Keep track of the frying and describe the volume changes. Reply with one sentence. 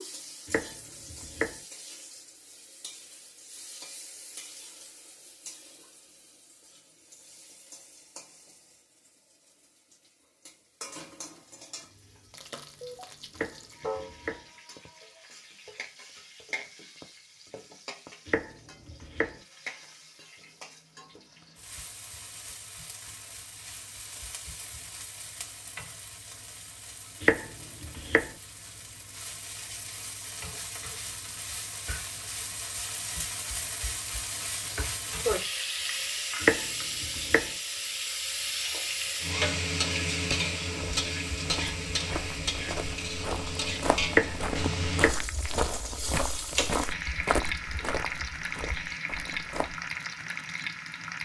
The volume of the frying goes up.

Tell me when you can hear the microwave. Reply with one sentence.
The microwave can't be heard in this clip.